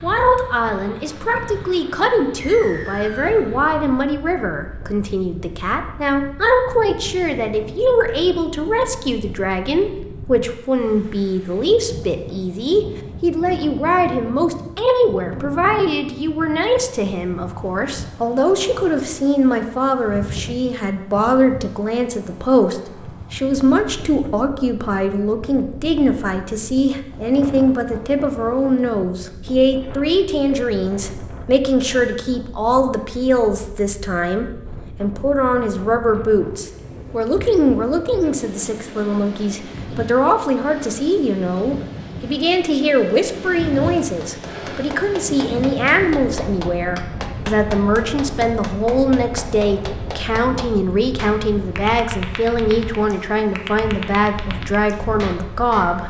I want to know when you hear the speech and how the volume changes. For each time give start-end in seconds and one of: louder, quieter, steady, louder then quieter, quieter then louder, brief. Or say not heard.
0.0-56.0 steady.